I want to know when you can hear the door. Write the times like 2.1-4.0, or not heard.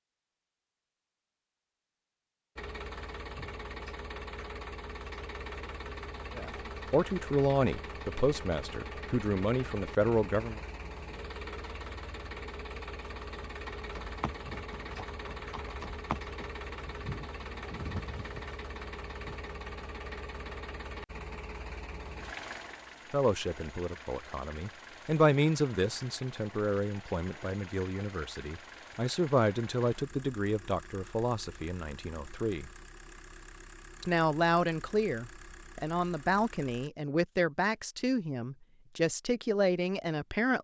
not heard.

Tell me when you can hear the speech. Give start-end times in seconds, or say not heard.
6.3-10.6, 23.1-32.7, 34.0-40.5.